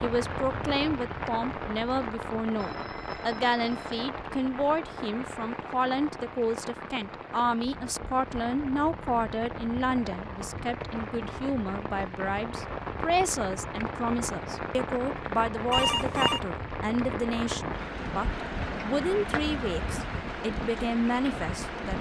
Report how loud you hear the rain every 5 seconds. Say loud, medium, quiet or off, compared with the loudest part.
loud, medium, loud, loud, loud.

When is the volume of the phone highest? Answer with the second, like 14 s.
16 s.